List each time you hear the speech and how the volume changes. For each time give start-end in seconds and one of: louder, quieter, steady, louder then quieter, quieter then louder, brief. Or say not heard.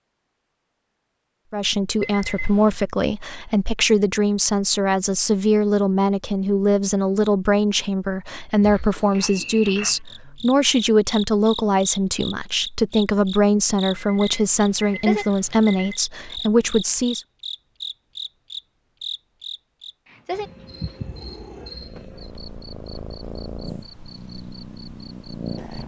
1.5-17.2 steady.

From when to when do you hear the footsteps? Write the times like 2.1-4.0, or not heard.
not heard.